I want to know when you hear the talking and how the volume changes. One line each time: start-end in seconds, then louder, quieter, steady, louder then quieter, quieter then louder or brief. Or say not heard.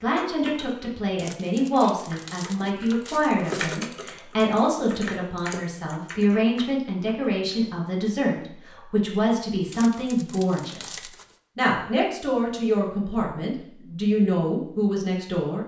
0.0-15.6 steady.